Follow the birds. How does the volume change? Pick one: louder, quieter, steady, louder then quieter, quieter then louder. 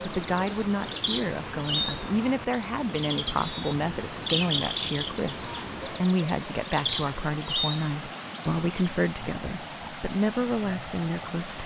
quieter then louder.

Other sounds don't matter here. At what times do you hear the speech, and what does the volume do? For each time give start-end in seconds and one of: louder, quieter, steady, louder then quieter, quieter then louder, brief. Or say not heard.
0.0-11.6 steady.